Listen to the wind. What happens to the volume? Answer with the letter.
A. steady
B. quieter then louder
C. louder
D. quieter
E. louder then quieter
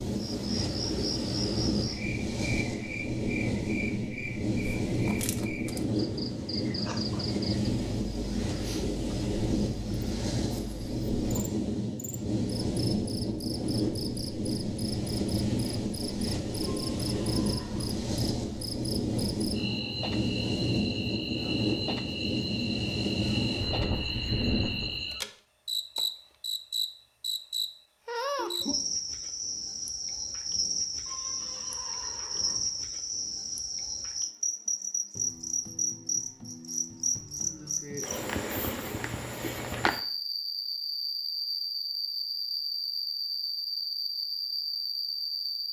A.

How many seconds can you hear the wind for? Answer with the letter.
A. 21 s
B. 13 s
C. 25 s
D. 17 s
C.